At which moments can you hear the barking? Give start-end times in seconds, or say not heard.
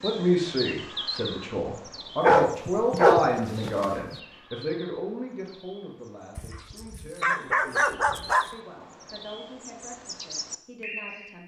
2.2-4.0, 6.3-8.5.